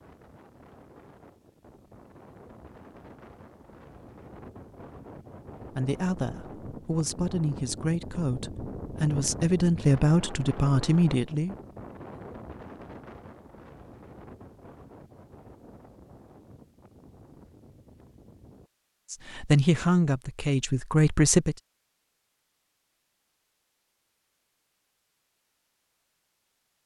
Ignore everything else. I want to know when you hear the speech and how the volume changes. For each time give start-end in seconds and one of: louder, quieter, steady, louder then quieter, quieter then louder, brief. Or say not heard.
5.8-11.6 louder
19.1-21.6 brief.